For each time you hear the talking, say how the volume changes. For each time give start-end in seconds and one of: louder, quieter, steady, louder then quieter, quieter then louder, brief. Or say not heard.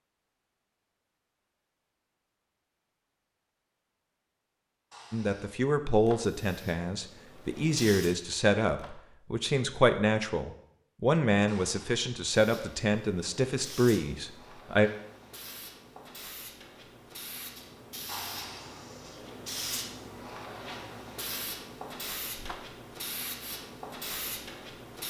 5.1-14.9 steady.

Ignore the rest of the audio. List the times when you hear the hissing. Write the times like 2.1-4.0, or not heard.
6.4-8.2, 12.3-25.0.